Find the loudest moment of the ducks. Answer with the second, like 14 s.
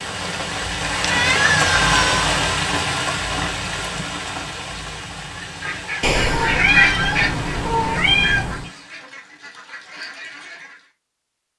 7 s.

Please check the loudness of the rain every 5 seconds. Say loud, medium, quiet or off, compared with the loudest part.
loud, quiet, off.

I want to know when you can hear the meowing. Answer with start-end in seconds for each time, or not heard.
1.0-2.3, 6.0-8.7.